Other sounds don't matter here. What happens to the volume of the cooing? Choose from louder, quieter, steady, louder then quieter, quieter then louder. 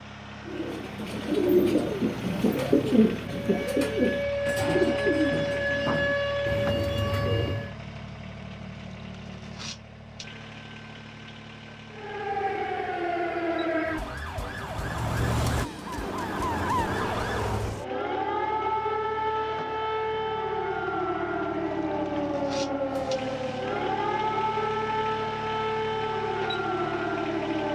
quieter.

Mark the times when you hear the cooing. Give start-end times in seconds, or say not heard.
0.5-7.7.